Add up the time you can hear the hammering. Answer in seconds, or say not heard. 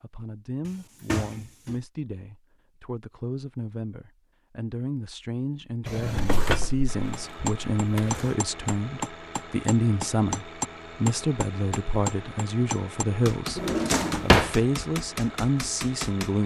9 s.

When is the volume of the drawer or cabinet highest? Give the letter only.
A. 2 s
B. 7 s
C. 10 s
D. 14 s
D.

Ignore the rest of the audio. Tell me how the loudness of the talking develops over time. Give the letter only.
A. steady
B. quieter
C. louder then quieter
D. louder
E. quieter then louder
D.